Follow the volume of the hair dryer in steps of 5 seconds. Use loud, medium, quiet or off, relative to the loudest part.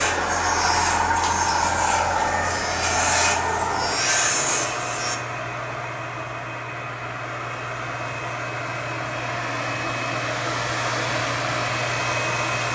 loud, medium, loud.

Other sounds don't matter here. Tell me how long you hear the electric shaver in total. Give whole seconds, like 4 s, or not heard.
5 s.